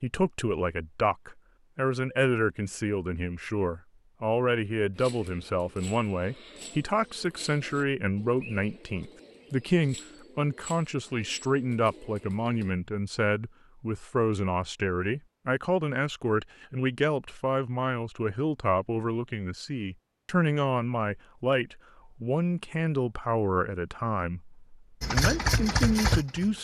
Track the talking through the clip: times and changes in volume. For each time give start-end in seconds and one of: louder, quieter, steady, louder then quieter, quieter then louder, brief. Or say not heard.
0.0-26.5 steady.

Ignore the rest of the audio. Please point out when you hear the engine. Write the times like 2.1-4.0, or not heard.
25.0-26.5.